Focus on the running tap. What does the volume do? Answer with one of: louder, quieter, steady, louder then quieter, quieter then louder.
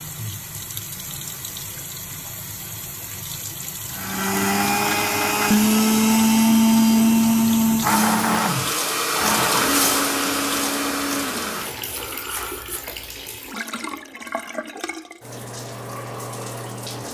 louder then quieter.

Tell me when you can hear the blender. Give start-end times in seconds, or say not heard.
3.9-13.6.